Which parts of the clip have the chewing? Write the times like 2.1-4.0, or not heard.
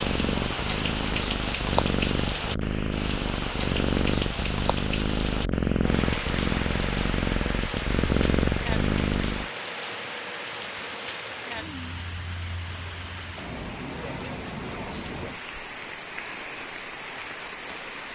not heard.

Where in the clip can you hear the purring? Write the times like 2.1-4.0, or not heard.
0.0-9.5.